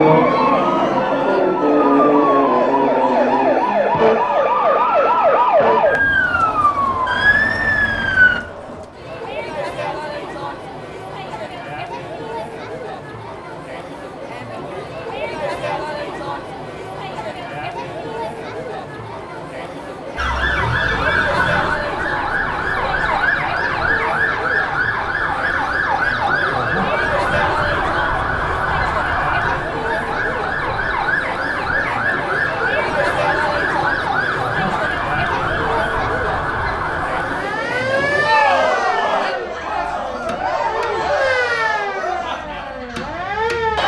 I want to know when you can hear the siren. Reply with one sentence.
The siren can be heard from 0.0 to 8.4 s and from 20.1 to 43.8 s.